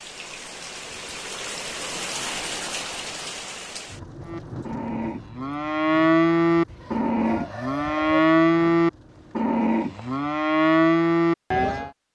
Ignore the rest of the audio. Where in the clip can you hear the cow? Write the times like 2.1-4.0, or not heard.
4.2-11.9.